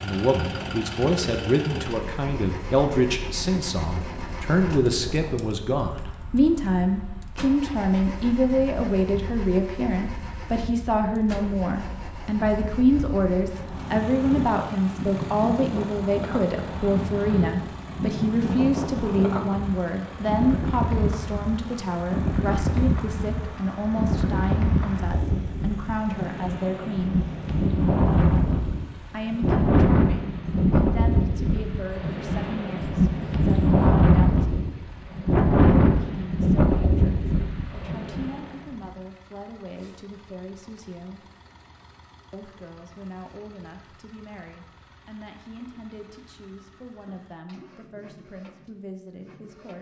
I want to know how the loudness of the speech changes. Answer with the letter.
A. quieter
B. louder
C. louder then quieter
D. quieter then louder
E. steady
A.